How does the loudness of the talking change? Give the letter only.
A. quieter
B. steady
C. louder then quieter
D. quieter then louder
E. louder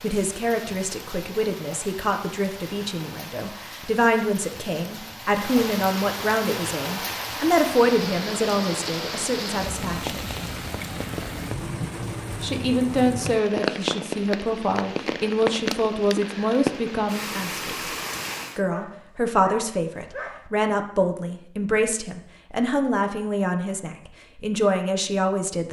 B.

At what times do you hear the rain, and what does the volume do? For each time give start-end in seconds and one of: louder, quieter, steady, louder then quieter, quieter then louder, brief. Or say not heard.
0.0-18.6 louder.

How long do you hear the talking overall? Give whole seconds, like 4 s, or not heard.
23 s.